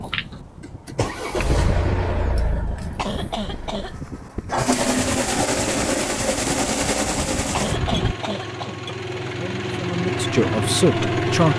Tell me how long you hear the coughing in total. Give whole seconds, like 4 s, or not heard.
2 s.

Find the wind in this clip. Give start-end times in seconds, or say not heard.
0.0-8.2.